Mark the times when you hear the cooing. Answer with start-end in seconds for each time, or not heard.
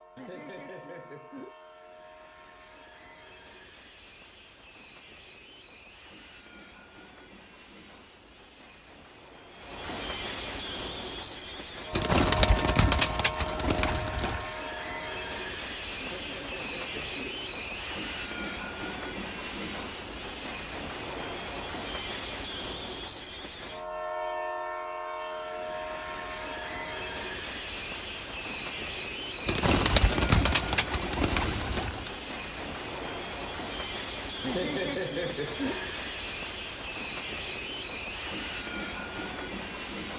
11.9-14.5, 29.4-32.1.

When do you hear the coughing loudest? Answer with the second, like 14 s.
35 s.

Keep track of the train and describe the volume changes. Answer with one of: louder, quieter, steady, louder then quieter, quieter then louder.
louder.